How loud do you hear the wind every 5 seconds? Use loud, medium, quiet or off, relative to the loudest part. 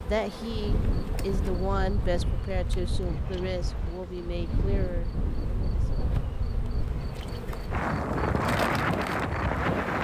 medium, loud.